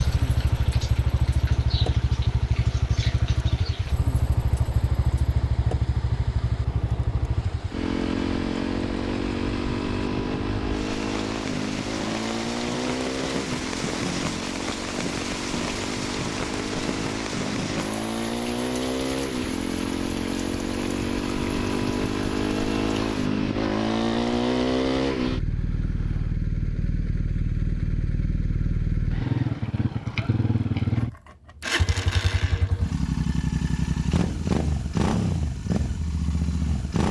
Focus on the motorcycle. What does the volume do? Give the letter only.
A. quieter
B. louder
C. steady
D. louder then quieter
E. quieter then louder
C.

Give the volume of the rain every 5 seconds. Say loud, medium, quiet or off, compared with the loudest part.
medium, medium, loud, loud, medium, off, off, off.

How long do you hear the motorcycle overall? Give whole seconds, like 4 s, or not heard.
37 s.